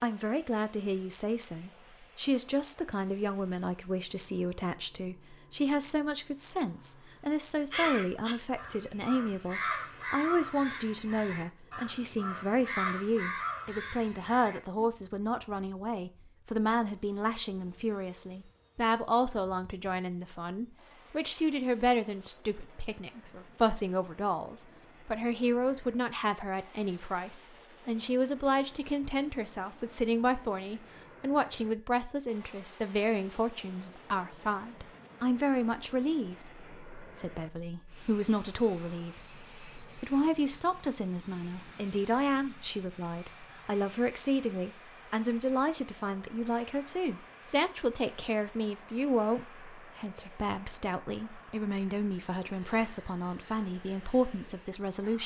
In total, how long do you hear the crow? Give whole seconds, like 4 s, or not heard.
7 s.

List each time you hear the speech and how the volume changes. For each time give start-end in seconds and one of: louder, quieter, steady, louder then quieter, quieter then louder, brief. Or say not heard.
0.0-55.2 steady.